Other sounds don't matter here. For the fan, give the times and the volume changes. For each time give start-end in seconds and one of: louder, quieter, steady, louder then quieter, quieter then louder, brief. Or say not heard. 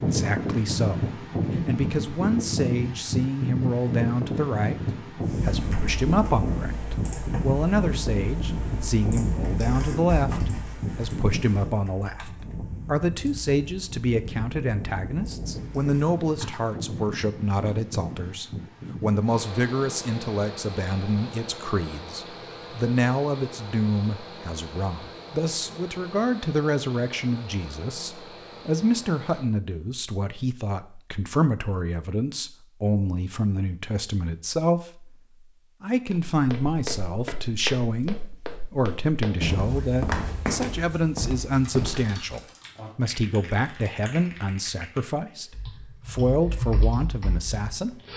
0.0-29.5 quieter.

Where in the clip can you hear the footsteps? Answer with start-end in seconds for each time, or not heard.
36.0-42.5.